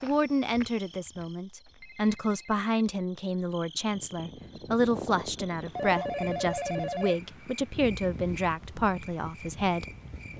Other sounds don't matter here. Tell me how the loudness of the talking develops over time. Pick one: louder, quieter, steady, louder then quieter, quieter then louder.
steady.